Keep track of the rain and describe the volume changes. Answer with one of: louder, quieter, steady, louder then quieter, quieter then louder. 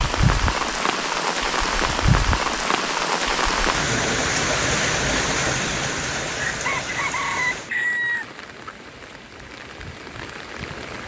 quieter.